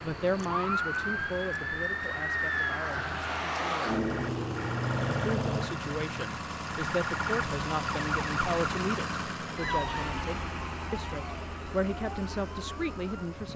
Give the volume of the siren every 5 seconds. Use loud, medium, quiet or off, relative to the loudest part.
loud, loud, quiet.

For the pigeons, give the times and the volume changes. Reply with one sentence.
The pigeons can't be heard in this clip.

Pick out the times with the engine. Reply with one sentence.
You can hear the engine from 0.0 to 13.5 s.